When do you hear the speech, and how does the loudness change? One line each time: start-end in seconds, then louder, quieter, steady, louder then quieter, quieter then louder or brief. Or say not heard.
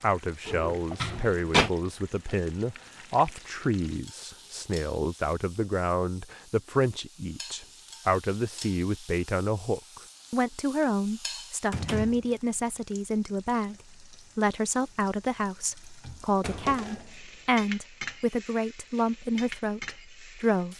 0.0-20.7 steady.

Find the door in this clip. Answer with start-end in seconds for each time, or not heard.
0.5-1.7, 11.7-12.1, 16.4-17.5.